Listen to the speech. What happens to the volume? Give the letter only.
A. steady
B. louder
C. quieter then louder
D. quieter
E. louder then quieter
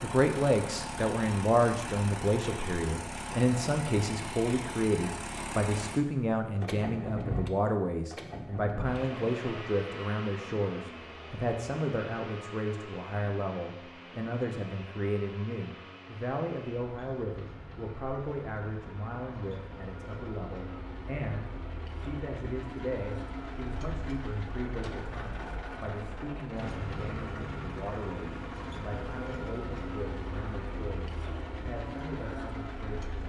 D.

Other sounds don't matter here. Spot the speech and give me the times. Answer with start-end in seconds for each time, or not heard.
0.0-33.2.